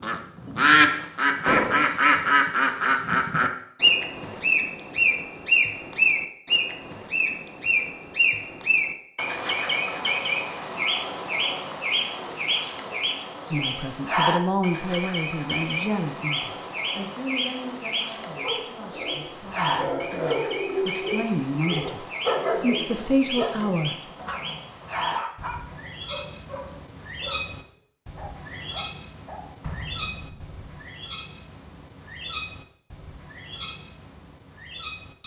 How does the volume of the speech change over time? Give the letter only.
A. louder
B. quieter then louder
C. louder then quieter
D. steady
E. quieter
B.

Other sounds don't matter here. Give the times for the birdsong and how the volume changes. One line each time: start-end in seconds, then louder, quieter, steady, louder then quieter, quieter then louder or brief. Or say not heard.
0.0-35.2 quieter.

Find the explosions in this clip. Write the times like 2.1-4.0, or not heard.
1.4-1.9, 29.6-30.6.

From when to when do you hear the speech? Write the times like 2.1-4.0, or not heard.
13.5-24.1.